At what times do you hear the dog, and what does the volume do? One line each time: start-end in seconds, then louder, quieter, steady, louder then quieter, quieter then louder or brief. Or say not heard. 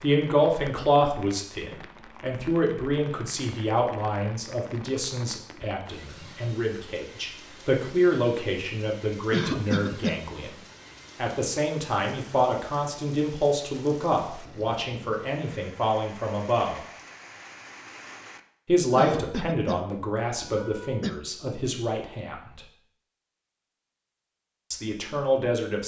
not heard.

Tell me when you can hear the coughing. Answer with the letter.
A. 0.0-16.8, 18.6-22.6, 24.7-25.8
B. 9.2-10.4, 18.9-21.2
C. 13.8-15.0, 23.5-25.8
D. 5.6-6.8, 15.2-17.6
B.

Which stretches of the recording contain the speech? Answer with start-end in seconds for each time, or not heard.
0.0-16.8, 18.6-22.6, 24.7-25.8.